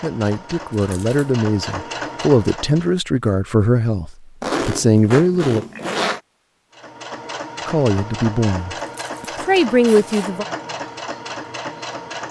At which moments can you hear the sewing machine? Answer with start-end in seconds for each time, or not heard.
0.0-3.0, 6.7-12.2.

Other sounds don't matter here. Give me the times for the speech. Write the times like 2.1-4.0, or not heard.
0.0-5.7, 7.7-10.4.